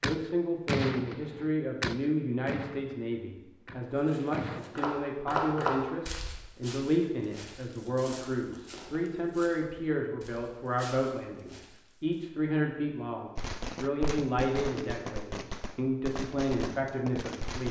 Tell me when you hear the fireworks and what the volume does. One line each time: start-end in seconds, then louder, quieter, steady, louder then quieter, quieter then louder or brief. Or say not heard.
0.0-4.6 quieter
13.3-17.6 steady.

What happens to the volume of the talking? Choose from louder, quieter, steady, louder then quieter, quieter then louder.
steady.